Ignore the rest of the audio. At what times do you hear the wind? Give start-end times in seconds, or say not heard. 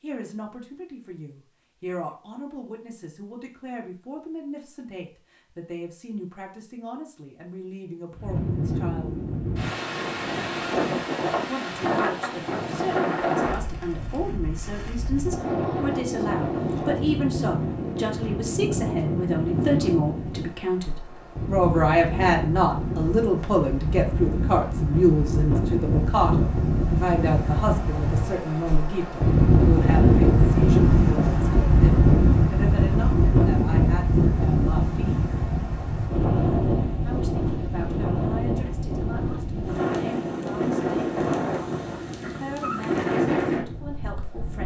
8.2-44.6.